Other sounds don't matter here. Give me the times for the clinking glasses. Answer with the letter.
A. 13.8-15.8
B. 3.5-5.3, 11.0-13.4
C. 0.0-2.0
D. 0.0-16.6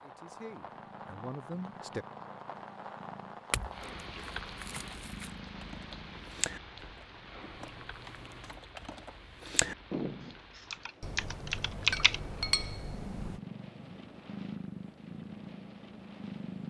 B.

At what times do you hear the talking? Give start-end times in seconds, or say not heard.
0.0-2.0.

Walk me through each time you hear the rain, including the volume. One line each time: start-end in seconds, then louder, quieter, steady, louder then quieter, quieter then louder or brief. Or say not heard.
0.0-16.6 quieter.